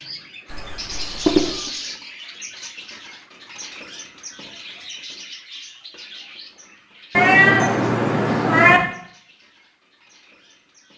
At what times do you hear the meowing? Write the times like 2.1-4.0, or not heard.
0.5-1.7, 7.2-8.8.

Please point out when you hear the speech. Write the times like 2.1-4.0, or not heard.
not heard.